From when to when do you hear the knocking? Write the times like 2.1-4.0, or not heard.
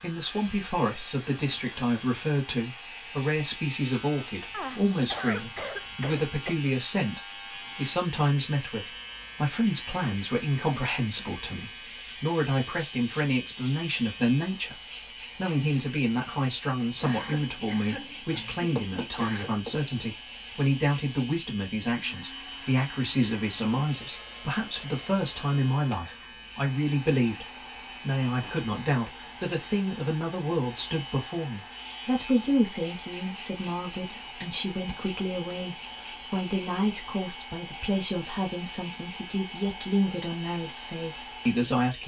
18.8-19.8.